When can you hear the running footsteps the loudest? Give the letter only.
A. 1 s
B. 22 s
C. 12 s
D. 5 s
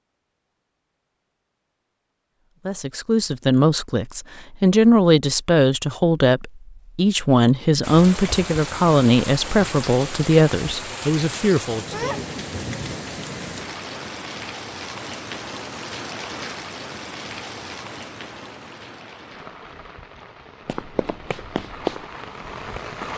B.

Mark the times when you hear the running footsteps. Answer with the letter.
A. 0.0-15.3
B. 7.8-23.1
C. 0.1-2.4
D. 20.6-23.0
D.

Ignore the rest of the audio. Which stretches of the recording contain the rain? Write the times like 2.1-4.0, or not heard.
7.8-23.1.